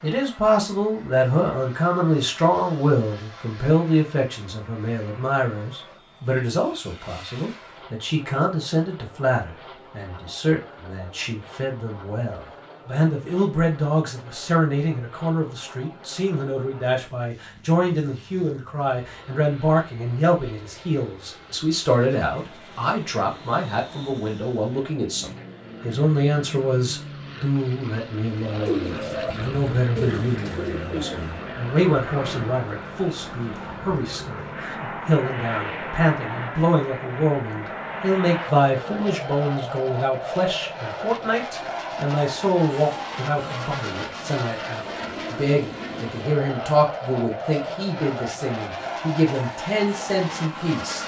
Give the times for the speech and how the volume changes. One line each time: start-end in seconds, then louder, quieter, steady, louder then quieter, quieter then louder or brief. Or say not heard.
0.0-51.0 steady.